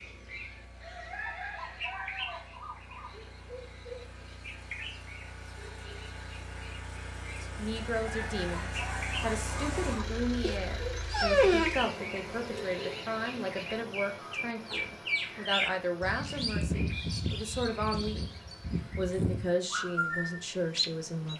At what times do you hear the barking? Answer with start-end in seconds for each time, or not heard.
10.4-11.8.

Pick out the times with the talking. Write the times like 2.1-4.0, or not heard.
7.4-18.3, 18.9-21.3.